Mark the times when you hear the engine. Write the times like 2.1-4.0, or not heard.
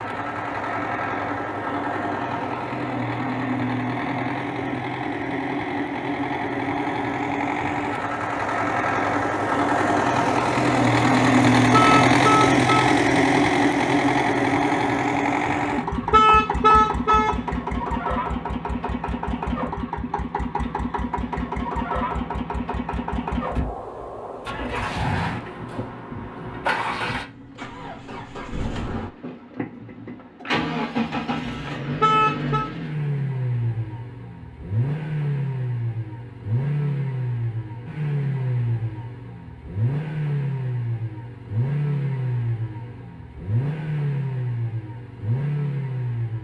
0.0-46.3.